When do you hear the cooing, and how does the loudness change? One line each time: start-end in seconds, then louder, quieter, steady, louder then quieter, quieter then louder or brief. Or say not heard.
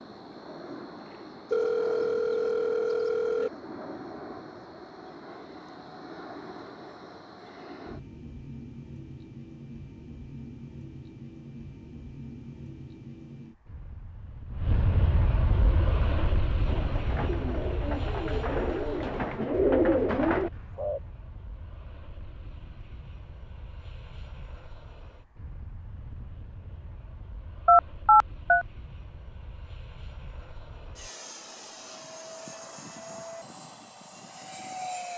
15.6-21.0 louder.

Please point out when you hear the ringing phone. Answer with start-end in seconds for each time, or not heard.
1.5-3.5, 27.6-28.6.